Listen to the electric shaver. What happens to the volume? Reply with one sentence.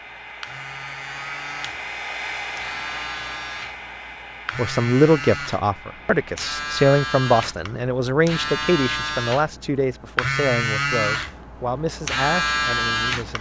The volume of the electric shaver goes up.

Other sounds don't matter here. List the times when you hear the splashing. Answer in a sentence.
You can't hear the splashing here.